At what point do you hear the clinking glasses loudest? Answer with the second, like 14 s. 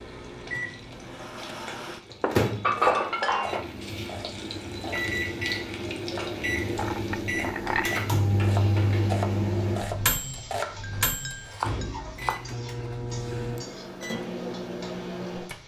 3 s.